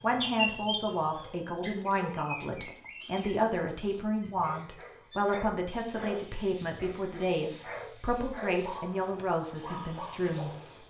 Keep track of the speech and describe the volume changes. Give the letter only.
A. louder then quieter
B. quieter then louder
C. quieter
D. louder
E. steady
E.